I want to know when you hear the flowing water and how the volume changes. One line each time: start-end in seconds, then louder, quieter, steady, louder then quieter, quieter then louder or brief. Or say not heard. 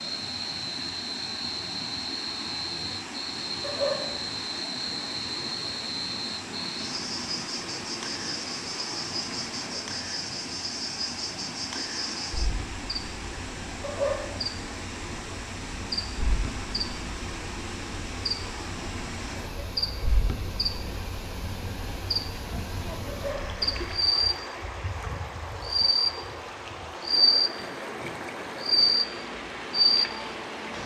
0.0-30.8 steady.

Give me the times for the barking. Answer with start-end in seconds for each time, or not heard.
3.6-4.2, 13.8-14.4, 23.1-23.6.